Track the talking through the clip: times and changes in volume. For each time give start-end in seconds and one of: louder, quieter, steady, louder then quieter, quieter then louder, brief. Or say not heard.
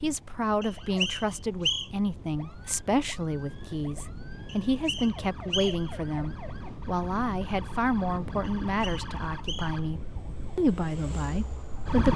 0.0-12.1 steady.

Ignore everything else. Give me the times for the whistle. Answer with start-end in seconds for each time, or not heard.
0.6-1.9, 4.5-6.0, 8.4-9.8.